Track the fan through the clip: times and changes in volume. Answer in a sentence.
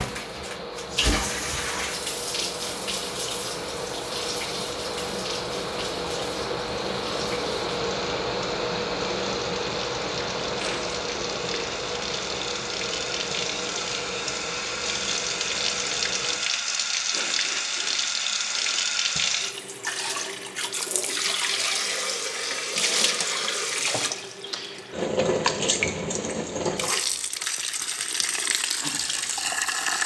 You can hear the fan from 0.0 to 16.4 s, getting louder then quieter.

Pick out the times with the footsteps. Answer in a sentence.
You can't hear the footsteps here.